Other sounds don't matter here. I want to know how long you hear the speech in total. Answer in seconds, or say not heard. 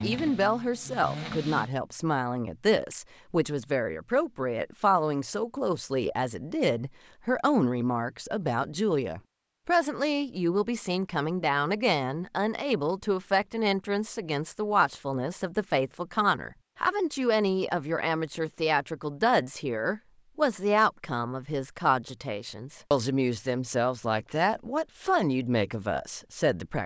27 s.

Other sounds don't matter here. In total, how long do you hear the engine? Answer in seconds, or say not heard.
2 s.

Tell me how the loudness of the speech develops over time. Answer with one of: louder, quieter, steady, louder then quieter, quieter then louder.
steady.